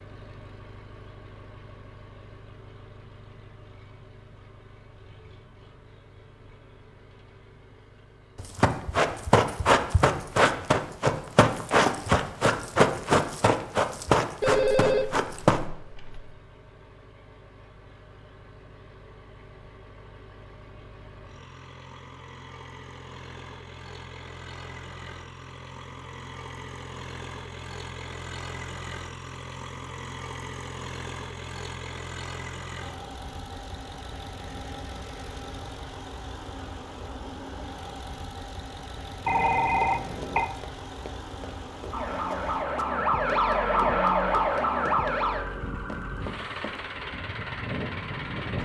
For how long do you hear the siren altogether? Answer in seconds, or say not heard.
7 s.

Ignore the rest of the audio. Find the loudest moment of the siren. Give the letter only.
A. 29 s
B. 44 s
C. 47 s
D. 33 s
B.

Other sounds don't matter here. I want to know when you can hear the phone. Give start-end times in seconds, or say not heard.
14.4-16.4, 39.2-40.5.